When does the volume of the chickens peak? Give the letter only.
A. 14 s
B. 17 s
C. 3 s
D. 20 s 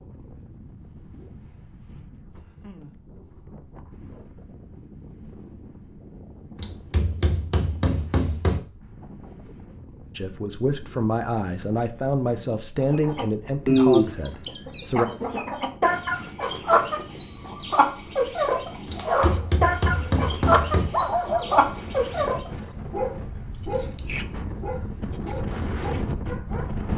A.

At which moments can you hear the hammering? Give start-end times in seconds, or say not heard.
6.5-8.6, 18.9-20.9.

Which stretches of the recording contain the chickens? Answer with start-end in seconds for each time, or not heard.
12.8-22.5.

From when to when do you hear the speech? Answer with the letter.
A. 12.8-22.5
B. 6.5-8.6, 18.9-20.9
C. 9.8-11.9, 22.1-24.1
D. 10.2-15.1
D.